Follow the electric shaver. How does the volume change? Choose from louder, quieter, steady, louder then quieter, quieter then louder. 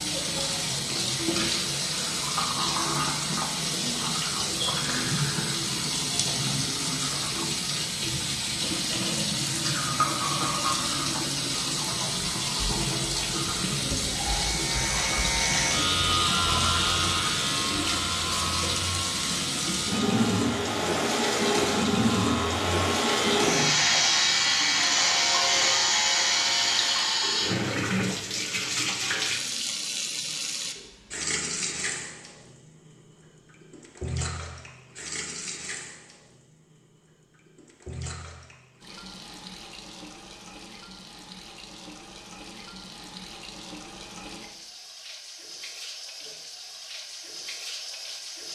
quieter then louder.